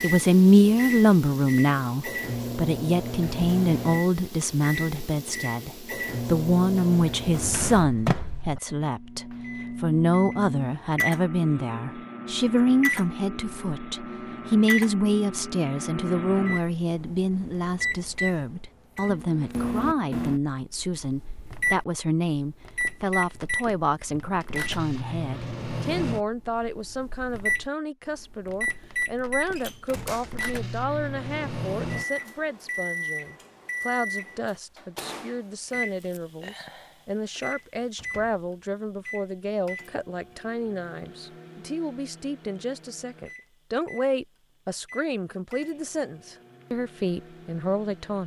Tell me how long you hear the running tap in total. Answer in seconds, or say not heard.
not heard.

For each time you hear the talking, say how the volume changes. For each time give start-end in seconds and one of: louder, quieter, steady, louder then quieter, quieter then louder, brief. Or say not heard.
0.0-48.2 quieter.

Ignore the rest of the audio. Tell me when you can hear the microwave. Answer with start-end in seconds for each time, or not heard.
0.0-48.2.